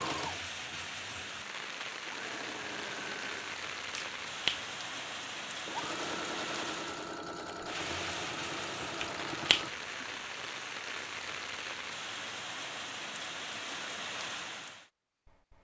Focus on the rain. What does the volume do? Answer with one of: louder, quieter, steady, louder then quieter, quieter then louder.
steady.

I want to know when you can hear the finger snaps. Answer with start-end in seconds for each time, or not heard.
4.0-5.0, 9.0-10.1.